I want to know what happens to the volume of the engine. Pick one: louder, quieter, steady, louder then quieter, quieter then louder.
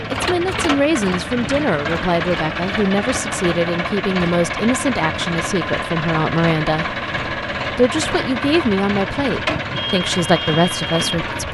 steady.